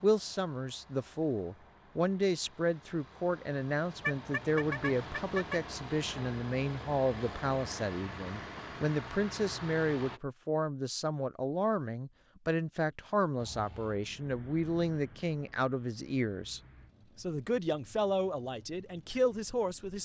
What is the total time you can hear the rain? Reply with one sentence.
The rain can't be heard in this clip.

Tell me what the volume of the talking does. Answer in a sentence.
The loudness of the talking stays about the same.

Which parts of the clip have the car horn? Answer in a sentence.
The car horn can be heard from 4.0 to 5.6 s.